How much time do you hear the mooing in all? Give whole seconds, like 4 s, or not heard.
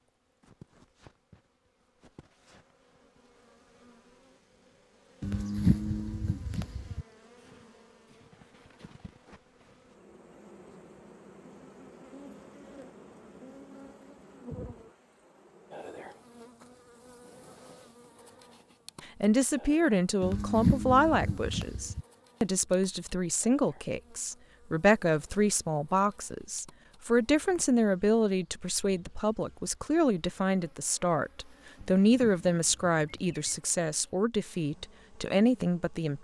5 s.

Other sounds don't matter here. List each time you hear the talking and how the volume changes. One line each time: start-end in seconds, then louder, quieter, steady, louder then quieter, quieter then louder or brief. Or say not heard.
19.0-36.1 steady.